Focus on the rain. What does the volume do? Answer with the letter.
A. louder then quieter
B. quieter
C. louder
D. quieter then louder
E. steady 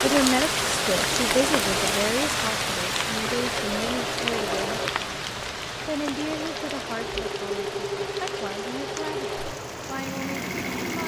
B.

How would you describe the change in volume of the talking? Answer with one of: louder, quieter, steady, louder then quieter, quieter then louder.
quieter.